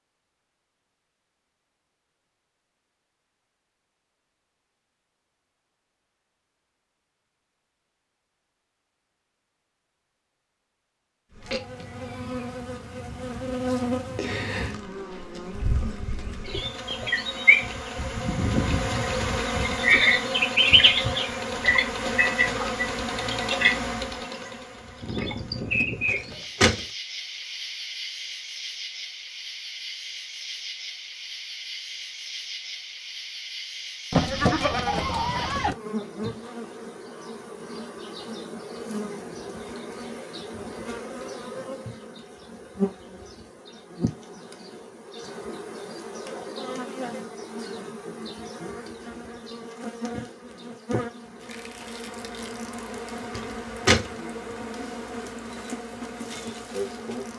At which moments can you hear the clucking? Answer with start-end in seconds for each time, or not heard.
26.1-26.8, 53.4-54.1.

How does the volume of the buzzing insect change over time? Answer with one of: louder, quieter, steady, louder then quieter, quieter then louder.
quieter.